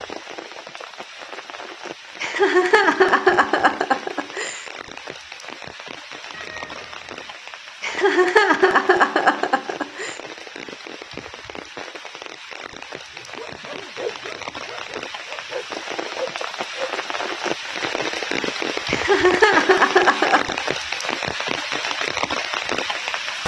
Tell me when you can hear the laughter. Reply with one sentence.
The laughter can be heard from 2.2 to 4.7 s, from 7.8 to 10.2 s and from 18.9 to 20.6 s.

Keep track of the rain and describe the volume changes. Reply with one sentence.
The loudness of the rain goes up.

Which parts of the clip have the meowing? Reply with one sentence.
You can hear the meowing from 6.3 to 7.3 s.